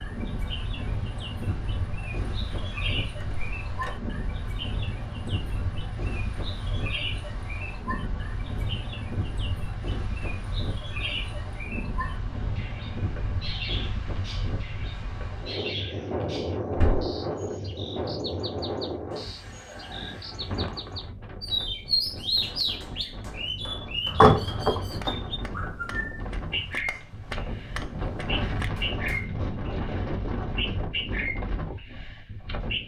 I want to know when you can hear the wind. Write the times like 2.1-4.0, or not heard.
0.0-32.8.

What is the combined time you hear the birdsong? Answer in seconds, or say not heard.
33 s.